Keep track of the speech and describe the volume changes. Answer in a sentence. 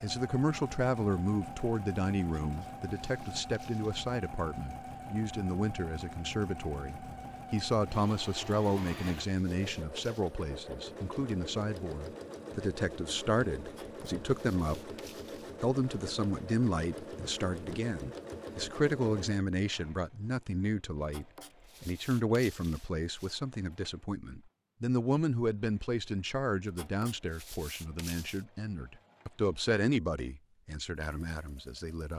The loudness of the speech stays about the same.